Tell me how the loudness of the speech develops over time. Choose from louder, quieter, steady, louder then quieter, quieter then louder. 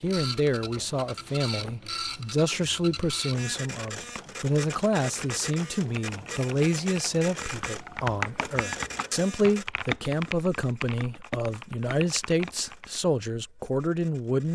steady.